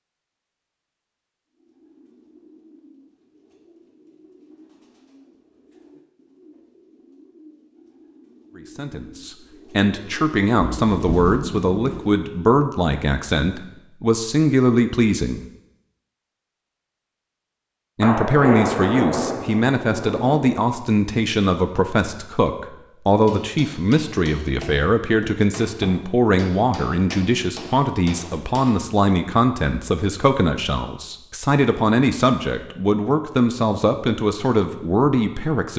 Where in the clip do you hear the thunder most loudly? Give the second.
19 s.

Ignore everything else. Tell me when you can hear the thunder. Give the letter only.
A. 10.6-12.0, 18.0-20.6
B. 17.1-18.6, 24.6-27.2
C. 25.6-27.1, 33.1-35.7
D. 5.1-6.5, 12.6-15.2
A.